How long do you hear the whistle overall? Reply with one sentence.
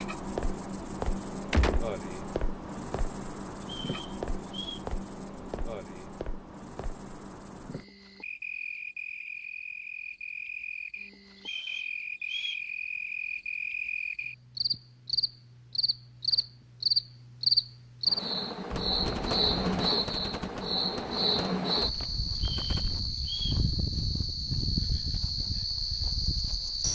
The whistle can be heard for 4 seconds in total.